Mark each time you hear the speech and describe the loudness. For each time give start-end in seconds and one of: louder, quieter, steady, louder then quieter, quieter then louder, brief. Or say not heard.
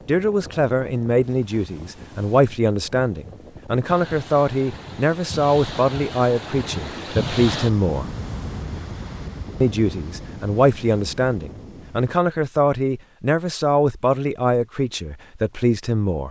0.1-8.1 steady
9.6-16.2 steady.